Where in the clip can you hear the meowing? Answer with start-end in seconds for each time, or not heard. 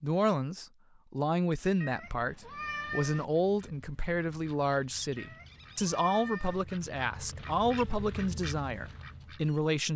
1.8-3.2, 5.2-6.7.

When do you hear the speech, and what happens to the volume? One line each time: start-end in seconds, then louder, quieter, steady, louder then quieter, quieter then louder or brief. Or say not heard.
0.0-9.9 steady.